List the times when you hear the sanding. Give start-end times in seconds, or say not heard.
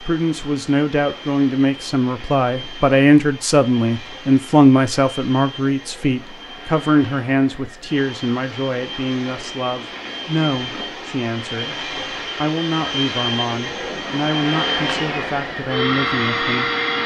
not heard.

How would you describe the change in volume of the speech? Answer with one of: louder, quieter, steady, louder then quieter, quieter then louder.
quieter.